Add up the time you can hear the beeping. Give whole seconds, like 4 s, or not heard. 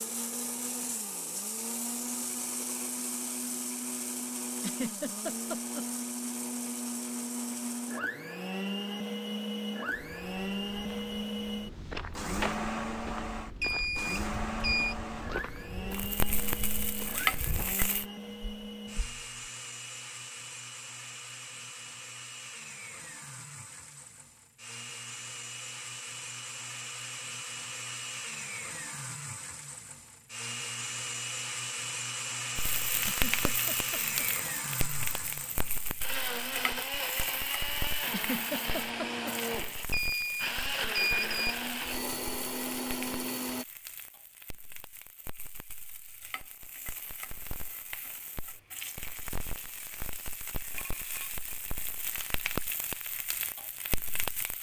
3 s.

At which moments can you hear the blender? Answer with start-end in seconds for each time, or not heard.
0.0-43.6.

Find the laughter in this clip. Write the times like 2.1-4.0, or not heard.
4.5-5.8, 33.0-34.3, 38.0-39.4.